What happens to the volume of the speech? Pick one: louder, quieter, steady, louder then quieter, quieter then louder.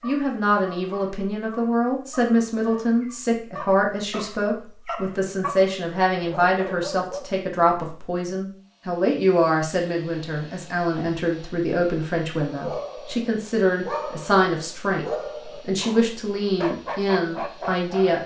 steady.